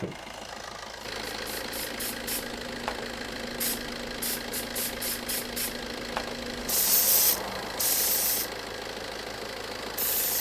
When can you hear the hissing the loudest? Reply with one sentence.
The volume of the hissing peaks at 7 seconds.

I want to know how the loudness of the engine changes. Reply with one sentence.
The volume of the engine stays about the same.